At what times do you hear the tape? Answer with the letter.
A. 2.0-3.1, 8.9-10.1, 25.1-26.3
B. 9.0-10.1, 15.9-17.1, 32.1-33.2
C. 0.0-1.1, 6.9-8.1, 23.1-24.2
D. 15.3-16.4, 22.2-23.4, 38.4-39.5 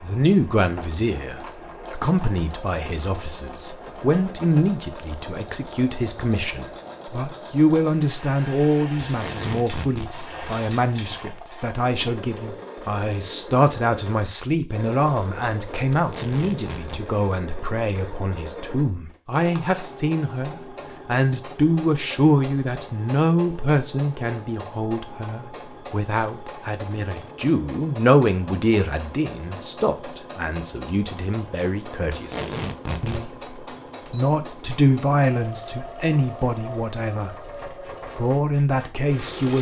B.